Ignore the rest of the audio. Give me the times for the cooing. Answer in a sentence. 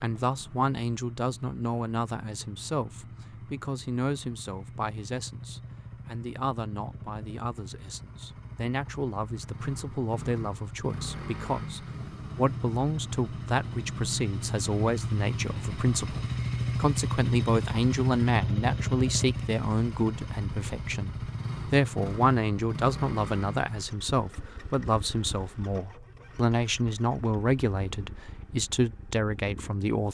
The cooing can't be heard in this clip.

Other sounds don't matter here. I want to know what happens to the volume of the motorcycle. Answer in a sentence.
The loudness of the motorcycle goes up, then down.